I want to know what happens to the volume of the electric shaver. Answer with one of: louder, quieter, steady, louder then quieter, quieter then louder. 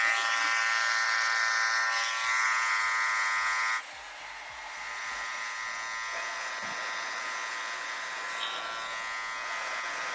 quieter.